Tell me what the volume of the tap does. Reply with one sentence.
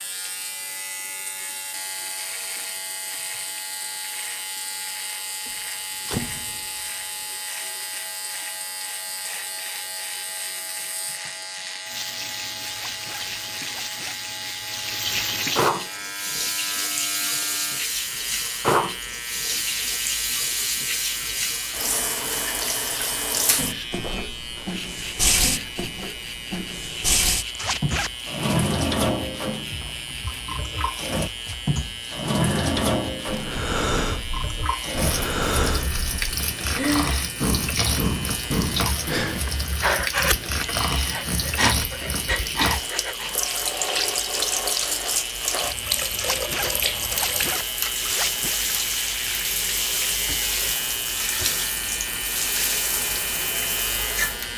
The loudness of the tap goes up.